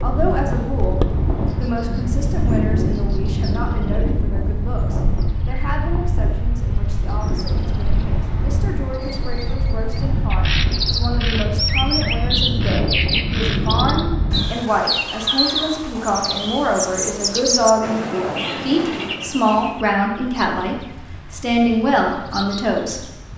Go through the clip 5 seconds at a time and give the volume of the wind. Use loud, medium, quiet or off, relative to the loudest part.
loud, loud, loud, quiet, quiet.